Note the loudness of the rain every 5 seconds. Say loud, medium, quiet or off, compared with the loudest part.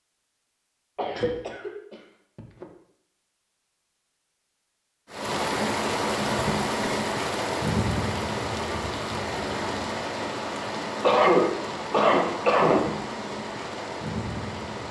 off, loud, medium.